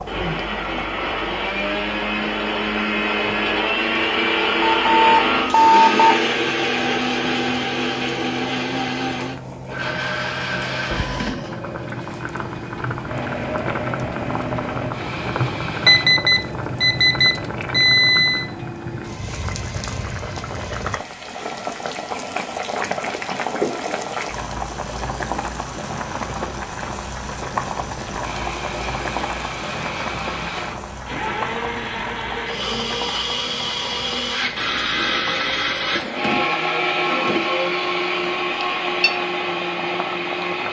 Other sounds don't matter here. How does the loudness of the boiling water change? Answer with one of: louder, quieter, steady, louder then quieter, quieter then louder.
louder then quieter.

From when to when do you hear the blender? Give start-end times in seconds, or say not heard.
0.1-16.1, 28.2-40.6.